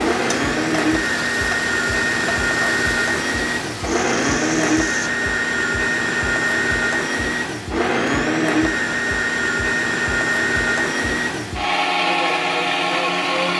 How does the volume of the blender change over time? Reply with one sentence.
The volume of the blender stays about the same.